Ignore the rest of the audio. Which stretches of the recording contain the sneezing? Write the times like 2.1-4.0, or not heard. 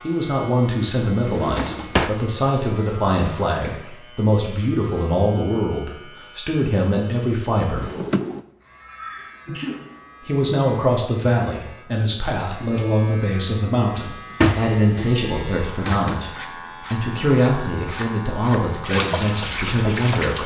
8.8-9.8.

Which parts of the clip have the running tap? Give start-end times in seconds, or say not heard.
18.8-20.4.